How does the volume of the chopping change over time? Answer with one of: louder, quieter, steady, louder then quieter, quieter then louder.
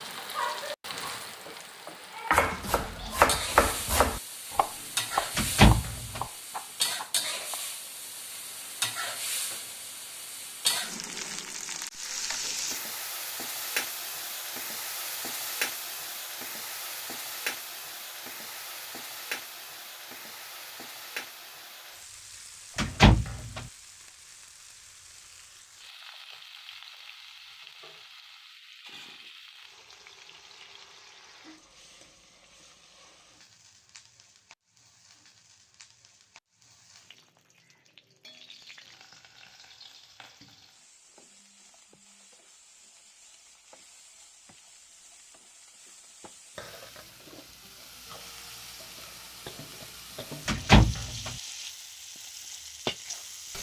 quieter.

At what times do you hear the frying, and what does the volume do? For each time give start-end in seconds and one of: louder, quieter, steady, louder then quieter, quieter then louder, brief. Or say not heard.
0.0-53.5 quieter then louder.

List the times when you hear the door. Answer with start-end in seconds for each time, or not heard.
5.3-6.2, 22.8-23.6, 50.5-51.4.